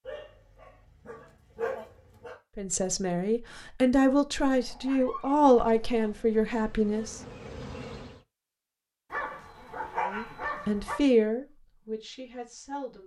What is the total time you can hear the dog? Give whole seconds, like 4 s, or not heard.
6 s.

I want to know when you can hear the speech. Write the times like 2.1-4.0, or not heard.
2.5-7.2, 10.1-13.0.